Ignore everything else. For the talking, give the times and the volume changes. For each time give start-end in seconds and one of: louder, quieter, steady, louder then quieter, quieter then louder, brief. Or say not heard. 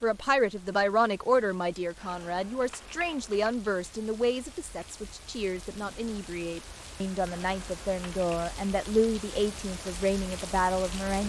0.0-11.2 quieter then louder.